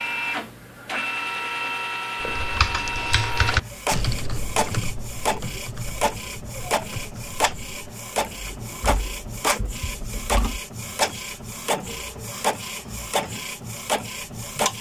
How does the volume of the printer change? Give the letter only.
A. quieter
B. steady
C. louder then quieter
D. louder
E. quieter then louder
B.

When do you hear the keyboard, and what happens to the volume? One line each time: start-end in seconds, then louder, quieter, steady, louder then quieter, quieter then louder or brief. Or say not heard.
2.2-10.6 quieter then louder.